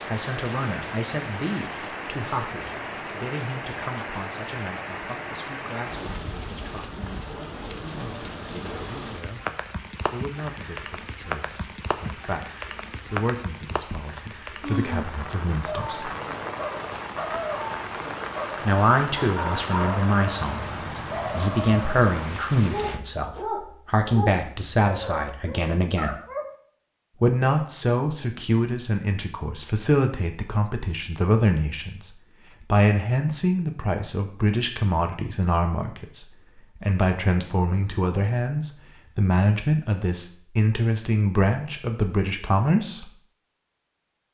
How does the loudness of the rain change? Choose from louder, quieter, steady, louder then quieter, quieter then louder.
steady.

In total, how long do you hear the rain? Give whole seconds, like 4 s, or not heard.
23 s.